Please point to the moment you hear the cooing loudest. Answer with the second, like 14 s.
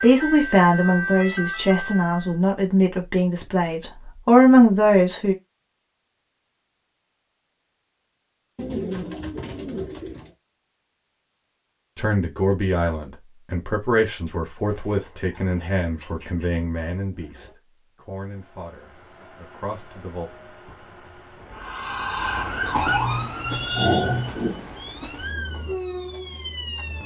9 s.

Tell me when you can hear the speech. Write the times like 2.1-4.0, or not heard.
0.0-5.3, 11.9-20.2.